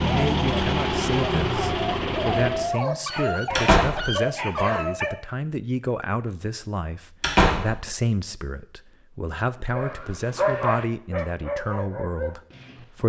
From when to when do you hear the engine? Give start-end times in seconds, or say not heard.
0.0-2.8.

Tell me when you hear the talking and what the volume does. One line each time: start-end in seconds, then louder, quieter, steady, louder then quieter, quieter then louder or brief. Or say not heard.
0.1-13.0 steady.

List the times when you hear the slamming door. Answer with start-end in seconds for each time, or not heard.
3.5-4.0, 7.2-7.8.